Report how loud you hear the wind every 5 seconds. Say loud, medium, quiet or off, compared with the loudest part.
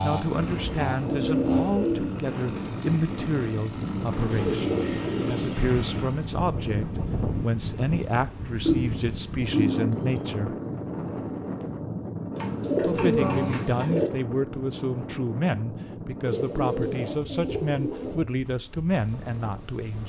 loud, loud, loud, medium.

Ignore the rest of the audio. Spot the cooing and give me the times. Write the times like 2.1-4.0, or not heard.
0.3-2.1, 4.3-6.2, 8.7-10.2, 12.3-14.1, 16.2-18.2.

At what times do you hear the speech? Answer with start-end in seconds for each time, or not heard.
0.0-10.6, 12.8-20.0.